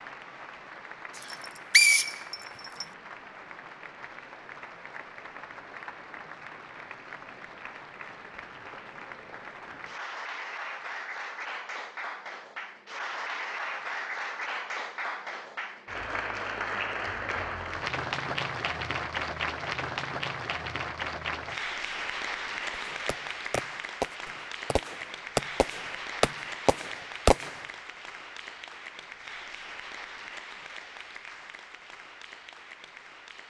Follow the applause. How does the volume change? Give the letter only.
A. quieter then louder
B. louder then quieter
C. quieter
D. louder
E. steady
B.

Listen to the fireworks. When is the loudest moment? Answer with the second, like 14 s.
27 s.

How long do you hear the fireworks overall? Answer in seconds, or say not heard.
5 s.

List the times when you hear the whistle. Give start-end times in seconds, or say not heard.
1.2-2.9.